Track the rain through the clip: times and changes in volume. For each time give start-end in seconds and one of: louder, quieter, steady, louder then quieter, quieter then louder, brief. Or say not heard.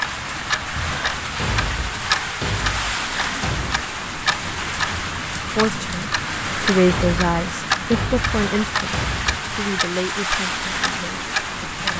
0.0-11.9 steady.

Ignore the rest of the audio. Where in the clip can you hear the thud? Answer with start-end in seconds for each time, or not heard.
1.4-3.9, 6.8-9.4.